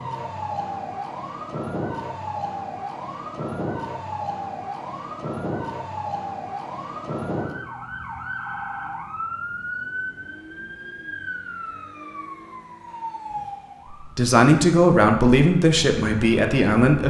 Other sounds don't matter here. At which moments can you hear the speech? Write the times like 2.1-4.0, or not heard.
13.9-17.0.